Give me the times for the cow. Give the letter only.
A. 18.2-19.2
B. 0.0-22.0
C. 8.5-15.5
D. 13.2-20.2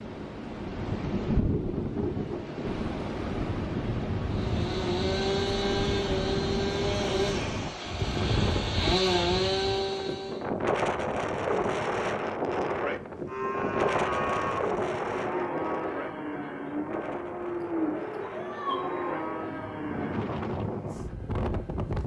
D.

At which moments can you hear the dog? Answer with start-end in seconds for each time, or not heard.
not heard.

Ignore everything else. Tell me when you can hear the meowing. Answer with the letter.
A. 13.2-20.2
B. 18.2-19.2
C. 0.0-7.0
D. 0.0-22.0
B.